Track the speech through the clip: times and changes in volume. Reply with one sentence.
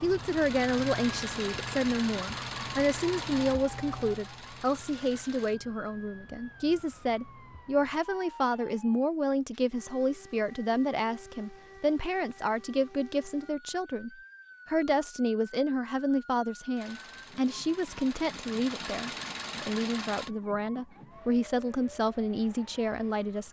You can hear the speech from 0.0 to 23.4 s, at a steady volume.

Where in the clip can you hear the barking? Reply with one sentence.
You can't hear the barking here.